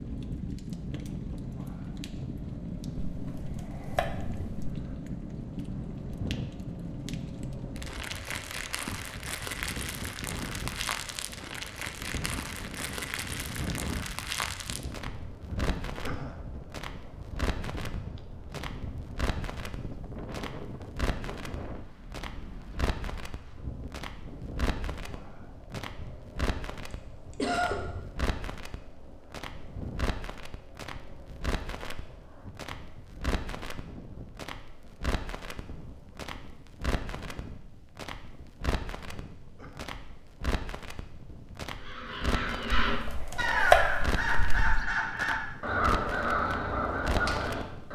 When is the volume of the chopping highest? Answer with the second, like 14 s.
44 s.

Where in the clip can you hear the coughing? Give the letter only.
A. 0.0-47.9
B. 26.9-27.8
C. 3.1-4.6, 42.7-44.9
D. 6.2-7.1
B.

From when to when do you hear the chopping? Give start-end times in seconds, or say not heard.
3.1-4.6, 42.7-44.9.